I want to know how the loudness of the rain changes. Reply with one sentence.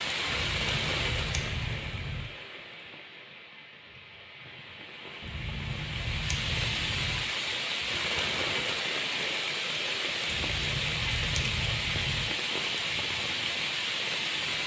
The volume of the rain goes down, then up.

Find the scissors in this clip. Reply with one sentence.
You can hear the scissors from 0.2 to 2.3 s, from 5.2 to 7.2 s and from 10.2 to 12.3 s.